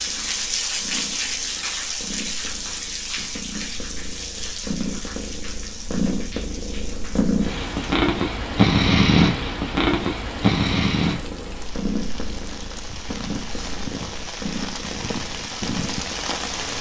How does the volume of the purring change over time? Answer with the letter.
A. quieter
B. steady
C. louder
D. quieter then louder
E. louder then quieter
E.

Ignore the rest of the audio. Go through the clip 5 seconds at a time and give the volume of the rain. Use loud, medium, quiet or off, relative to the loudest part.
loud, medium, medium, loud.